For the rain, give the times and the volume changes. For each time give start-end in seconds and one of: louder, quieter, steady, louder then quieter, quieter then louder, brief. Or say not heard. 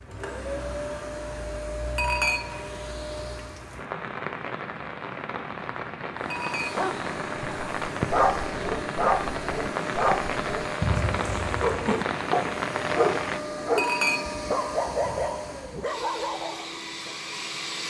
0.0-13.4 louder.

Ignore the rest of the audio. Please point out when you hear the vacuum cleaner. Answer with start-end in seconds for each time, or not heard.
0.0-3.8, 6.2-17.8.